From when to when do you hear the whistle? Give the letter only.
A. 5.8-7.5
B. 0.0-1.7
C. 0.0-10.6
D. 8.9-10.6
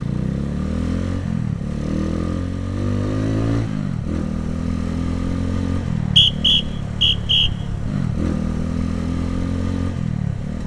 A.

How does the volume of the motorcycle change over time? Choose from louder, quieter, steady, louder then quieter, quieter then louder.
steady.